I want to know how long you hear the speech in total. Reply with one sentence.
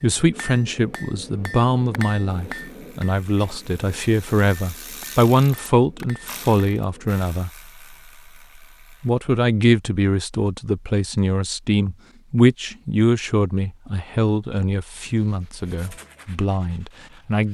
You can hear the speech for 16 seconds altogether.